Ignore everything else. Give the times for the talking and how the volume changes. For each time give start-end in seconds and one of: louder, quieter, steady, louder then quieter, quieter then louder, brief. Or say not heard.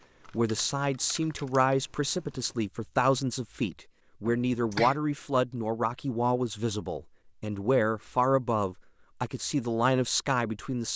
0.2-10.9 steady.